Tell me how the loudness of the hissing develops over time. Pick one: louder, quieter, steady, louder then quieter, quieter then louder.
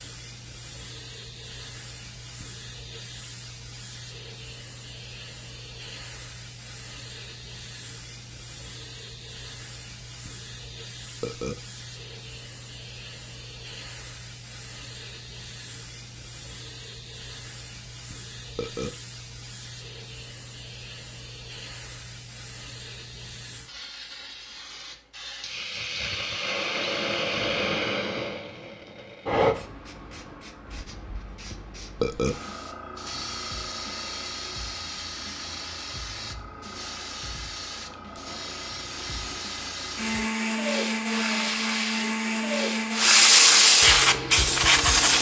louder.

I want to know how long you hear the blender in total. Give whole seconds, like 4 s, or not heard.
5 s.